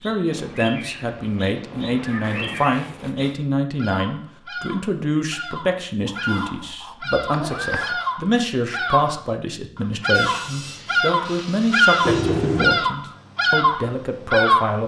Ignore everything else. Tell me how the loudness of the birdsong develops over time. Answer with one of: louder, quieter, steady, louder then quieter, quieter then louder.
louder.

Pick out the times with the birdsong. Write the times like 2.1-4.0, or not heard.
0.0-14.8.